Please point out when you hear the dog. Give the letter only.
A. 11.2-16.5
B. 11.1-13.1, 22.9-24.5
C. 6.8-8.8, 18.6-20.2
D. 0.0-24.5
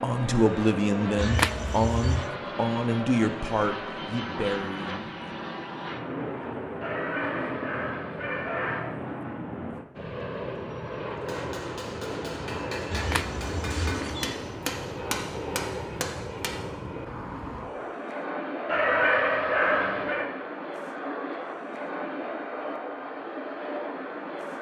C.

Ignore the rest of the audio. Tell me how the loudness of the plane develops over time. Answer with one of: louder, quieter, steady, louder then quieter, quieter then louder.
steady.